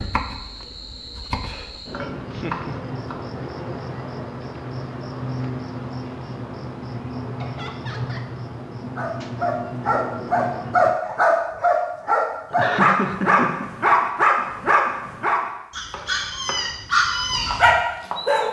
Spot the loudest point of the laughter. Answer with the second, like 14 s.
13 s.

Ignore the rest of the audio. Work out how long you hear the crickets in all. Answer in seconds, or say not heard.
11 s.